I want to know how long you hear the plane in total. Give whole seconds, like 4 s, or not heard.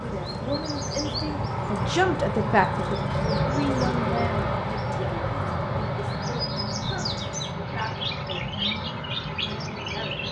10 s.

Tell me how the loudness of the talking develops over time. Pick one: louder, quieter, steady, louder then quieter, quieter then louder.
quieter.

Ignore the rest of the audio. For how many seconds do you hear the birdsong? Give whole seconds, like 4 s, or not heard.
10 s.